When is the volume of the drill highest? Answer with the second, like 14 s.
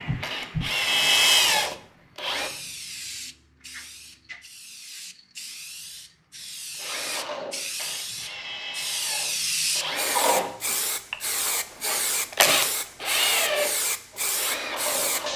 1 s.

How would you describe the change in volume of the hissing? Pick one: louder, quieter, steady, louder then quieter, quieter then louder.
quieter then louder.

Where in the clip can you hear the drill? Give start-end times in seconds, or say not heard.
0.2-2.5, 6.8-15.3.